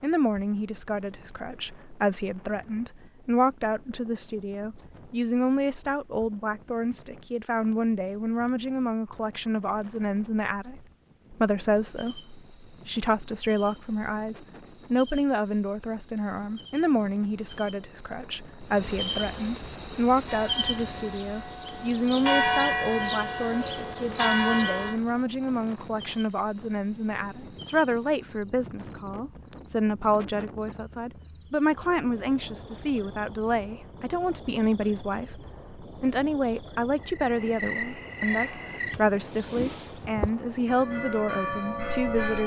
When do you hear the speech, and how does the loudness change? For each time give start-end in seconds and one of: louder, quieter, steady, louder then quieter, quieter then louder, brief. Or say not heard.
0.0-42.4 steady.